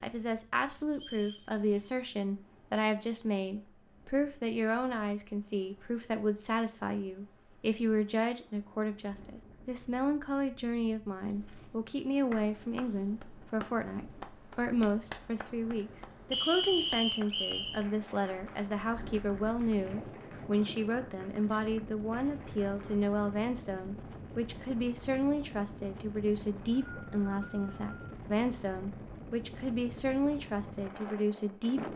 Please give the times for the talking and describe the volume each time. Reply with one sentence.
The talking can be heard from 0.0 to 31.9 s, at a steady volume.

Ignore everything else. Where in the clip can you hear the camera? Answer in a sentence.
You can't hear the camera here.